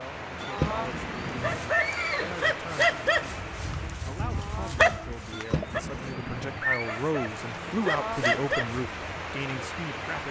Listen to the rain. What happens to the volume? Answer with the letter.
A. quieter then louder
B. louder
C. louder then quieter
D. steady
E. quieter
A.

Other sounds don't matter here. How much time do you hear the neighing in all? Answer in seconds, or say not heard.
4 s.